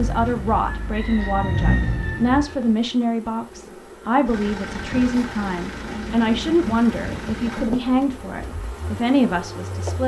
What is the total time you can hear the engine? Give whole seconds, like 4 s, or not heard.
8 s.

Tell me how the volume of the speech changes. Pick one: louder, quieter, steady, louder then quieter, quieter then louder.
steady.